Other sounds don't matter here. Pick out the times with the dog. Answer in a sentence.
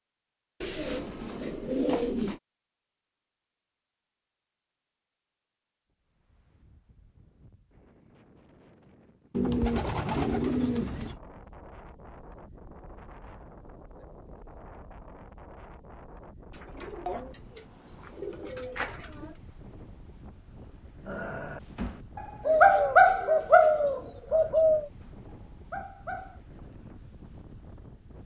You can hear the dog from 21.1 to 26.4 s.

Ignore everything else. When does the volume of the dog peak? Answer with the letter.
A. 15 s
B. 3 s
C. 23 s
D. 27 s
C.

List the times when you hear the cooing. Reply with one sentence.
The cooing can be heard from 0.6 to 2.4 s, from 9.3 to 11.2 s, from 16.8 to 19.4 s and from 22.4 to 24.9 s.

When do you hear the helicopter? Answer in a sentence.
You can't hear the helicopter here.